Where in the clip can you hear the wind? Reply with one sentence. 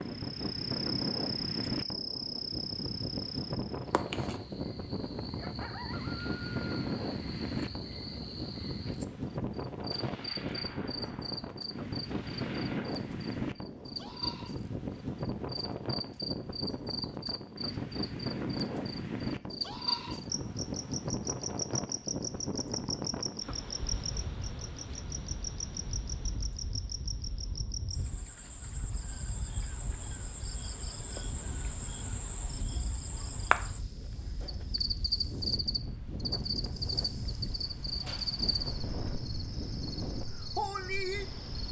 The wind can be heard from 0.0 to 41.6 s.